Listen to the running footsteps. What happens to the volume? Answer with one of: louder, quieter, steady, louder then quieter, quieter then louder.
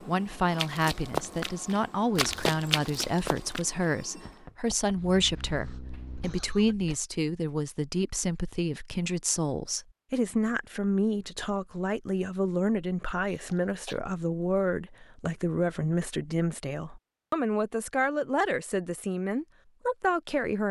quieter.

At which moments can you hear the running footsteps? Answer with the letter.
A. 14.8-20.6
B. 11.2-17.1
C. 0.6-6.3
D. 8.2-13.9
C.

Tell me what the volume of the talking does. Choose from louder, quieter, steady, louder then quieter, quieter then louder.
steady.